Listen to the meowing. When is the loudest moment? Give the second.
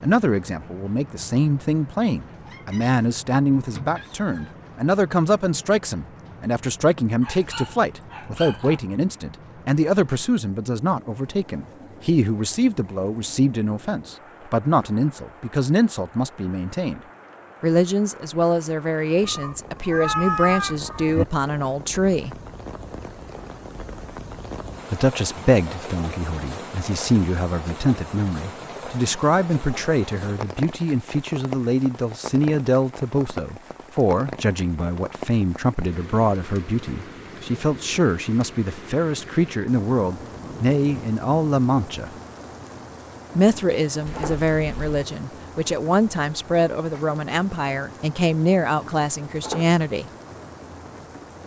20 s.